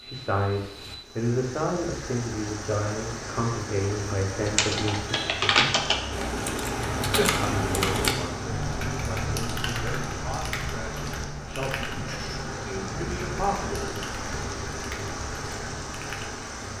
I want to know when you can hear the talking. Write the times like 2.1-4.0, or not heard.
0.0-5.0, 7.4-14.1.